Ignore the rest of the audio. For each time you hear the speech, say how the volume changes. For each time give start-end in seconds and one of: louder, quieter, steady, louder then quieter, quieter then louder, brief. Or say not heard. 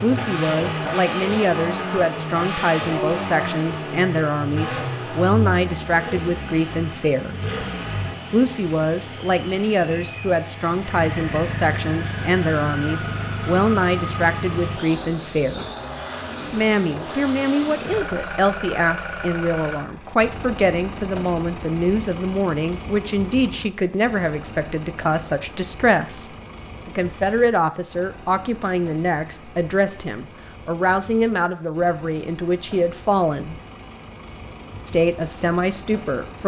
0.0-7.3 steady
8.3-15.7 steady
16.5-33.5 steady
34.9-36.4 brief.